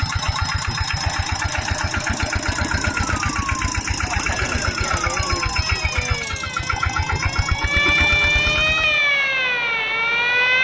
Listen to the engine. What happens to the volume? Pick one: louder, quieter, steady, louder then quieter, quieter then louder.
steady.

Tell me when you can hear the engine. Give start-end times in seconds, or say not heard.
0.0-9.0.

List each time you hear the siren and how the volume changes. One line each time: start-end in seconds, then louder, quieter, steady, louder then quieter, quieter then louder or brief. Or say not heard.
2.4-10.5 louder.